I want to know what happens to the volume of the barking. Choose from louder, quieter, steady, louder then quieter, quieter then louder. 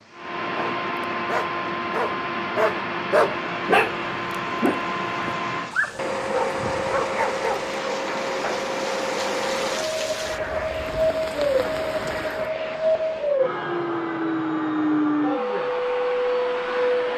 louder then quieter.